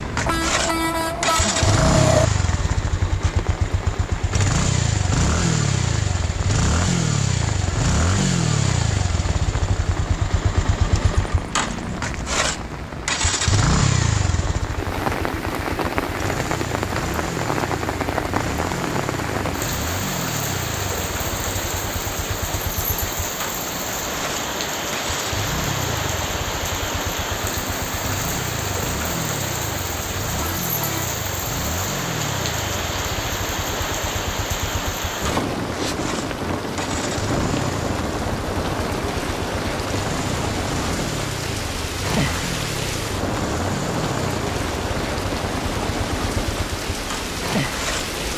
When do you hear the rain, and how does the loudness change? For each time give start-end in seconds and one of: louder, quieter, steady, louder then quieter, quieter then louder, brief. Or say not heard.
0.0-48.3 louder.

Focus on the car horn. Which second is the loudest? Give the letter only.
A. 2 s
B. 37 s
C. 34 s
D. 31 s
A.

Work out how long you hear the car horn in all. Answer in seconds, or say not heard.
3 s.